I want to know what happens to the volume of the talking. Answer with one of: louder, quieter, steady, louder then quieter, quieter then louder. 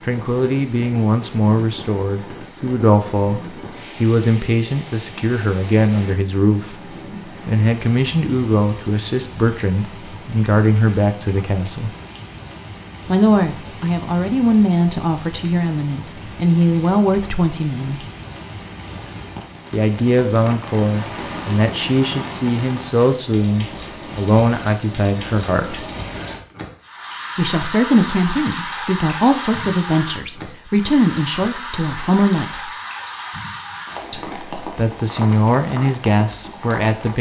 steady.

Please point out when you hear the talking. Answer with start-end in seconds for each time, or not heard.
0.0-11.9, 13.1-18.1, 19.7-25.9, 27.4-32.7, 34.1-37.1.